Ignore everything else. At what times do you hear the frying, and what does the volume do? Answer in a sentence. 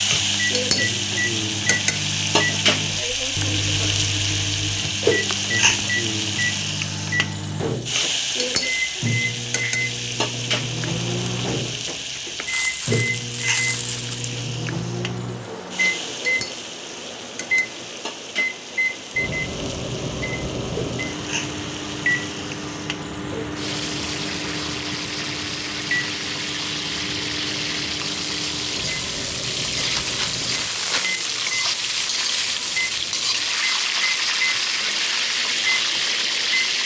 You can hear the frying from 0.0 to 36.8 s, getting quieter then louder.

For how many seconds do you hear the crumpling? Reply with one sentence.
You can hear the crumpling for 4 seconds altogether.